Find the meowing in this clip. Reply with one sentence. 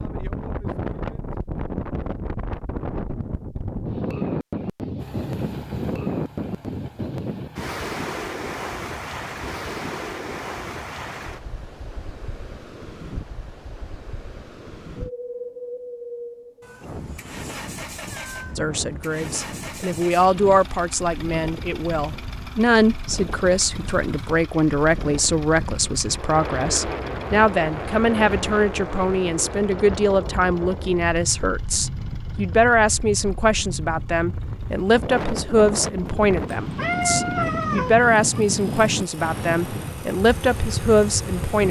The meowing can be heard from 16.6 to 18.6 s and from 36.5 to 38.4 s.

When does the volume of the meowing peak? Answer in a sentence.
The loudest moment of the meowing is at 37 seconds.